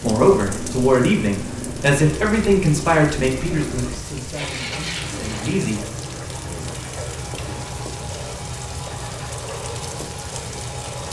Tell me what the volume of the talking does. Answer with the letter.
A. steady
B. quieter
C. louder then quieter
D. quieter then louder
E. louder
B.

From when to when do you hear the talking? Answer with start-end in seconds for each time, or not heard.
0.0-5.8.